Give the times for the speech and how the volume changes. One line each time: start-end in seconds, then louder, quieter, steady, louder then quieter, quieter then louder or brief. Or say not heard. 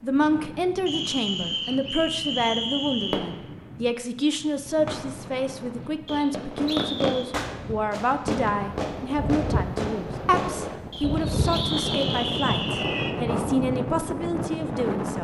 0.0-15.1 steady.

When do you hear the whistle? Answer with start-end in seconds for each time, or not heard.
0.8-3.2, 6.0-7.2, 10.9-12.7.